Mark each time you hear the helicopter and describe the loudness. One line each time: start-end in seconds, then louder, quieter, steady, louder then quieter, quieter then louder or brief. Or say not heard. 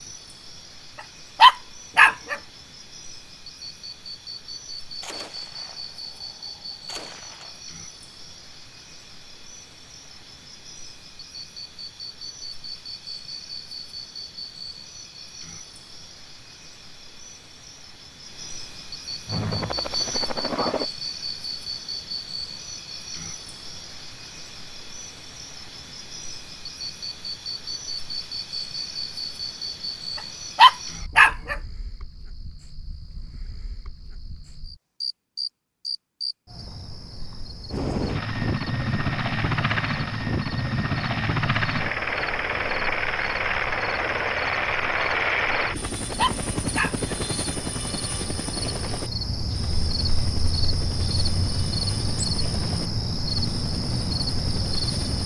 19.2-20.9 brief
37.7-55.2 quieter.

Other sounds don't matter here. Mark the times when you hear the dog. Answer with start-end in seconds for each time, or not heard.
1.4-2.4, 30.6-31.6, 46.1-47.1.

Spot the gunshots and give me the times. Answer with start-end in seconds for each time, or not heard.
5.0-7.6.